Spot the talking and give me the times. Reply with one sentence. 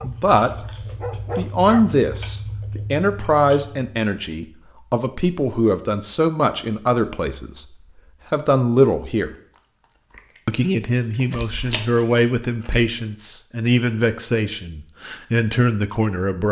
You can hear the talking from 0.0 to 0.7 s, from 1.4 to 9.3 s and from 10.4 to 16.4 s.